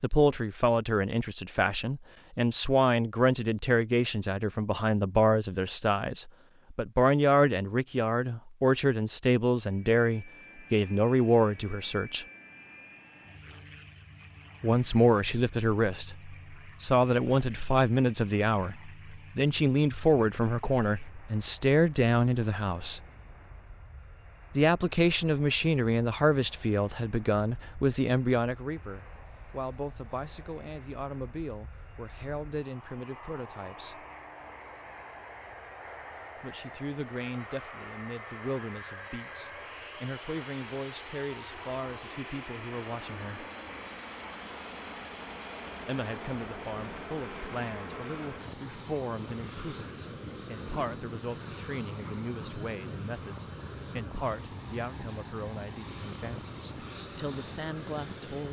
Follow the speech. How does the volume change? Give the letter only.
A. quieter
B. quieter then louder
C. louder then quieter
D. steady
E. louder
A.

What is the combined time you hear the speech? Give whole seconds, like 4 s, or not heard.
50 s.